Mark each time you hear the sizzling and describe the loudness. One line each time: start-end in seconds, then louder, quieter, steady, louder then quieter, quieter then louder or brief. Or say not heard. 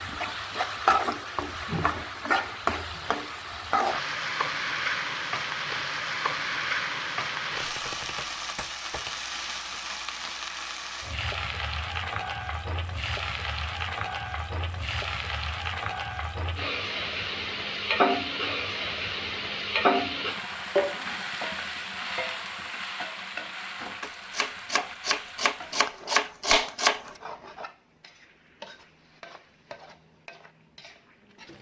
0.0-31.5 quieter.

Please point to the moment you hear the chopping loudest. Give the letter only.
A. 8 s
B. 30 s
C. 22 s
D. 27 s
D.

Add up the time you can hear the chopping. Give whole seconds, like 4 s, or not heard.
5 s.